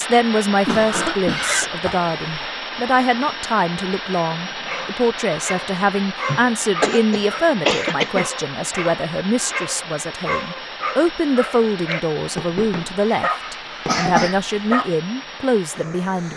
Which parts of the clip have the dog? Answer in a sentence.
The dog can be heard from 4.7 to 14.9 s.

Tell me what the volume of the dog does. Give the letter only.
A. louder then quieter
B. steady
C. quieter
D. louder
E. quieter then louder
B.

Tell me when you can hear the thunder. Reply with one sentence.
You can't hear the thunder here.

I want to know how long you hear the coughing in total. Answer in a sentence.
You can hear the coughing for 5 seconds altogether.